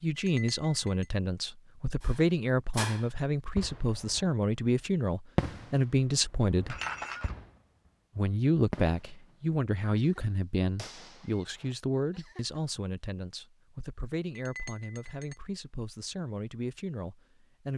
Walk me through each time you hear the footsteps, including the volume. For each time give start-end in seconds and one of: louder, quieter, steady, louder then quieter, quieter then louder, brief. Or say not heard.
not heard.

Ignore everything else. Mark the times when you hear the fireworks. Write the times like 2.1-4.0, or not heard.
2.0-4.3, 5.3-7.9, 8.7-12.6.